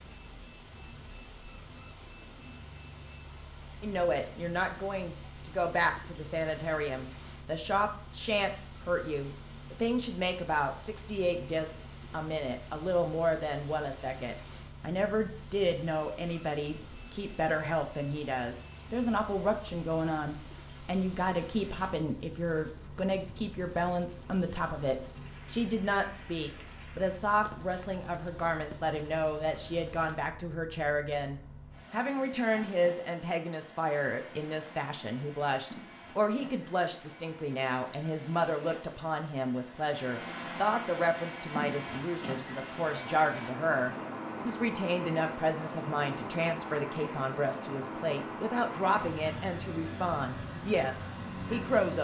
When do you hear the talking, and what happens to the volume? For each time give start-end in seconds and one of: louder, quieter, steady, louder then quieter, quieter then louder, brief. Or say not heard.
3.8-51.9 steady.